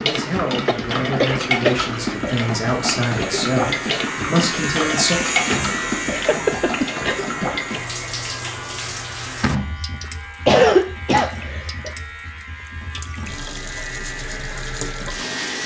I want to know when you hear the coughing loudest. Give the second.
11 s.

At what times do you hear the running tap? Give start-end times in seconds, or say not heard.
0.0-15.6.